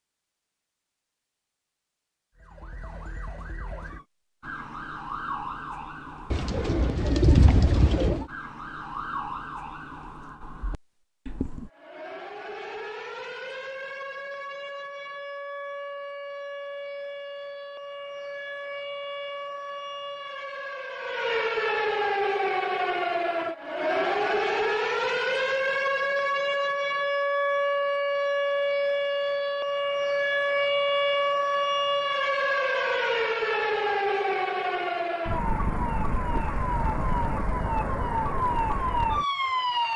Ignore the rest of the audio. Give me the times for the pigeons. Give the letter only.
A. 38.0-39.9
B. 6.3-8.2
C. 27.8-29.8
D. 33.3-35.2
B.